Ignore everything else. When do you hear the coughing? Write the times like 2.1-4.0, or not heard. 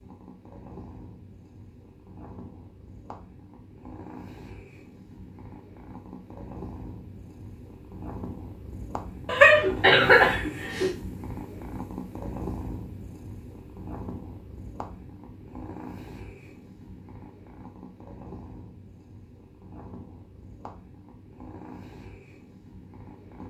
9.2-10.9.